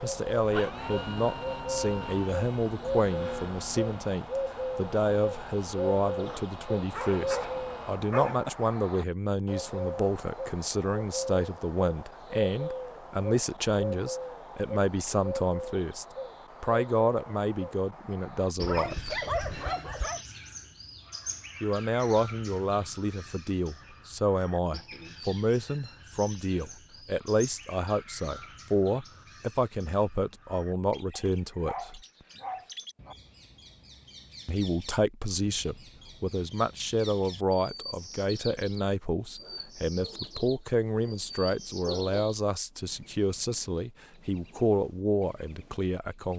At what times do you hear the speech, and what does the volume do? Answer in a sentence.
You can hear the speech from 0.0 to 19.2 s, at a steady volume; from 21.6 to 32.0 s, at a steady volume; and from 34.5 to 46.3 s, at a steady volume.